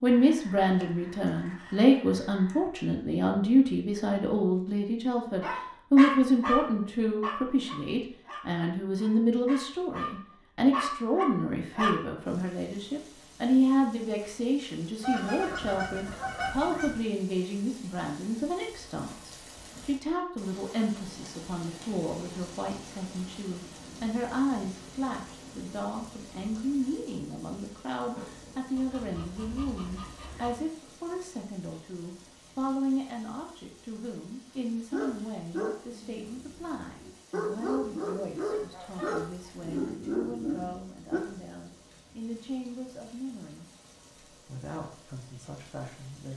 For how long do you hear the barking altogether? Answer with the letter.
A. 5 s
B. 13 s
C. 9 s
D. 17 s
B.